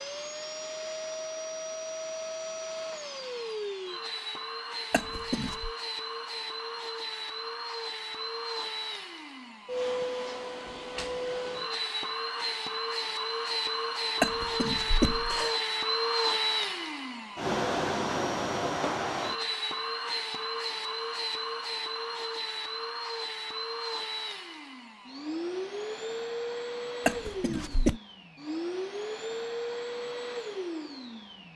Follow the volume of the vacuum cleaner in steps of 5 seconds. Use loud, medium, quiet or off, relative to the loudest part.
medium, medium, loud, loud, medium, medium, medium.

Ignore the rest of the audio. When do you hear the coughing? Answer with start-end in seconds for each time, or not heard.
4.9-5.7, 14.2-15.6, 27.1-28.0.